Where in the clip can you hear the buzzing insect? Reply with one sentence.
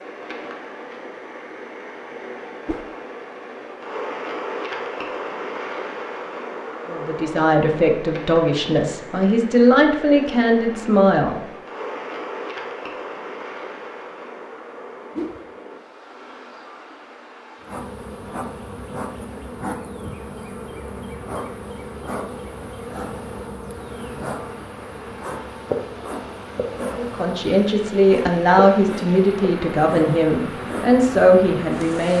You can hear the buzzing insect from 17.6 to 32.1 s.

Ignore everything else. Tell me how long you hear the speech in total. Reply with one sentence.
You can hear the speech for 10 seconds altogether.